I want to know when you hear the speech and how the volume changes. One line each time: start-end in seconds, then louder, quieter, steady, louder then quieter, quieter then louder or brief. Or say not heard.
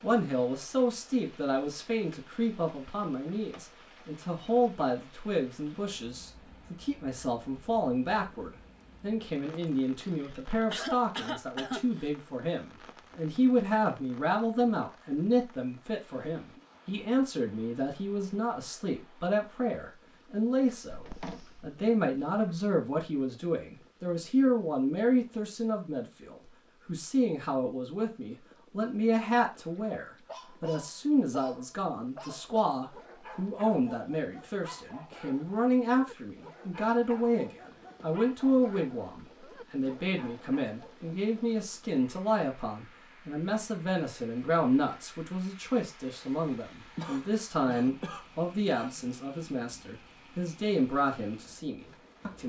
0.0-52.4 steady.